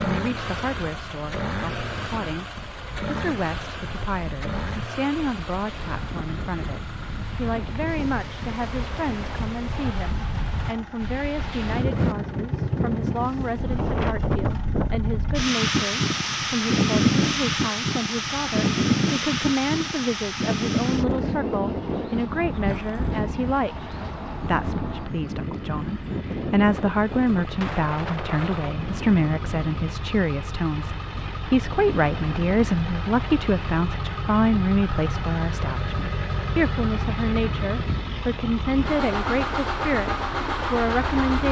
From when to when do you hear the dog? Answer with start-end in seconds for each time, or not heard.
not heard.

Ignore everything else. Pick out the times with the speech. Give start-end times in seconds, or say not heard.
0.0-41.4.